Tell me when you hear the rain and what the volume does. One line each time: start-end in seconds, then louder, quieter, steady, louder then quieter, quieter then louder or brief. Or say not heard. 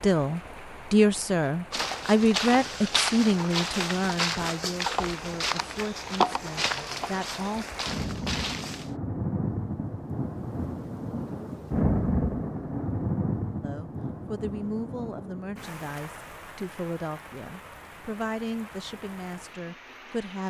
0.0-20.4 louder then quieter.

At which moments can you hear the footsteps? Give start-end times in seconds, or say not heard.
1.7-8.9.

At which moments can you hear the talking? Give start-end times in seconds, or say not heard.
0.0-7.7, 13.6-20.4.